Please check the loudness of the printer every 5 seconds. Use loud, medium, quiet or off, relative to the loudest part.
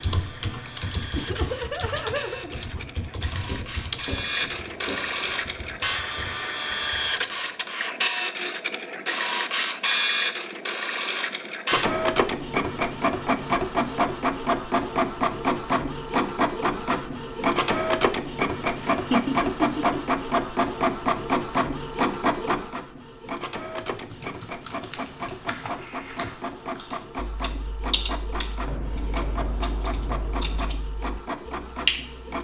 medium, loud, loud, loud, loud, medium, medium.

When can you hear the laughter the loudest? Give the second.
19 s.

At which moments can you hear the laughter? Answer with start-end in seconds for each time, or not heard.
1.1-3.0, 18.9-20.1.